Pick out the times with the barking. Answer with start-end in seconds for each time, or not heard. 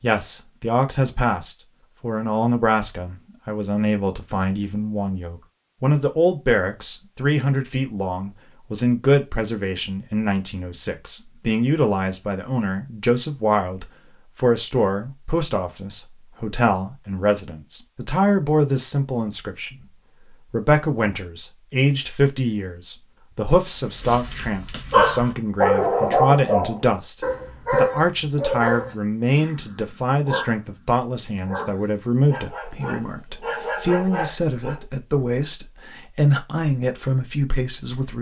23.9-34.8.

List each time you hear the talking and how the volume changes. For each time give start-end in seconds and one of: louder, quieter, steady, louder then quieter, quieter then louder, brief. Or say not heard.
0.0-38.1 steady.